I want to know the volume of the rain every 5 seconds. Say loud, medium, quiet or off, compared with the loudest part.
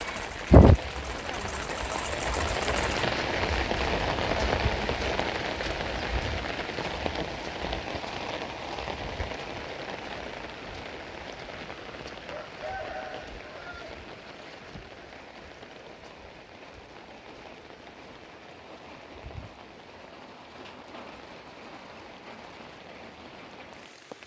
loud, medium, quiet, quiet, quiet.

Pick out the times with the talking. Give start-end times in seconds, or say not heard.
not heard.